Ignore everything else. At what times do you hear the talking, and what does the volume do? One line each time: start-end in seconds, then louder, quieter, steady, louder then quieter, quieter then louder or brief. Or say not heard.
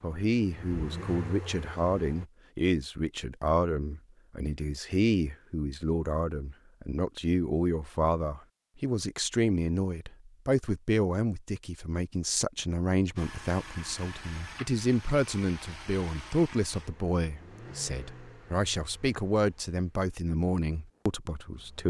0.0-21.8 steady.